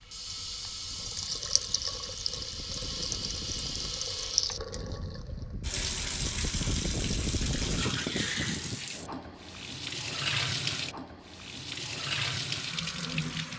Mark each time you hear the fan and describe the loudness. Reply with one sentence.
You can hear the fan from 0.0 to 8.9 s, getting louder.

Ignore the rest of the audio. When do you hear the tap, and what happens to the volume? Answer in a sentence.
You can hear the tap from 0.0 to 13.5 s, at a steady volume.